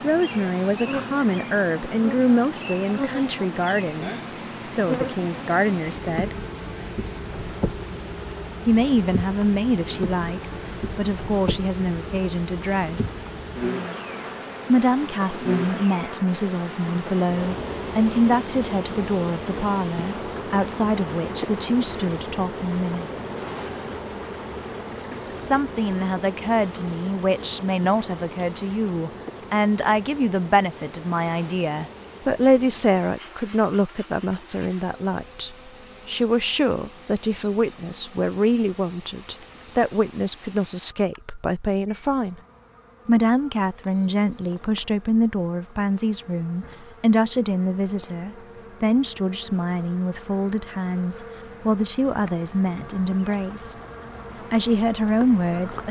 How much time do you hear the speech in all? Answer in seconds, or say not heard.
48 s.